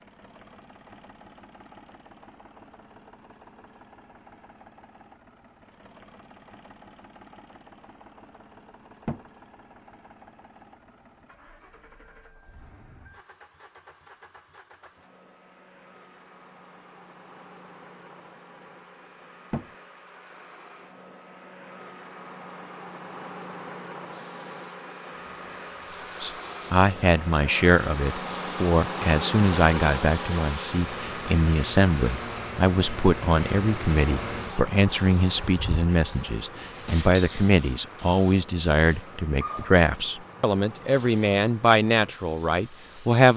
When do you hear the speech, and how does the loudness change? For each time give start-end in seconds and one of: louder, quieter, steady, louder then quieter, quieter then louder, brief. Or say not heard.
26.2-43.3 steady.